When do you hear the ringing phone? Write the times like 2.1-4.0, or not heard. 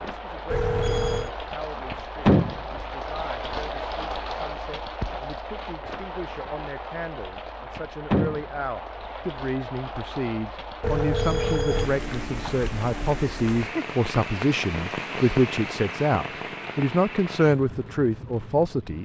0.5-1.3, 10.8-11.9.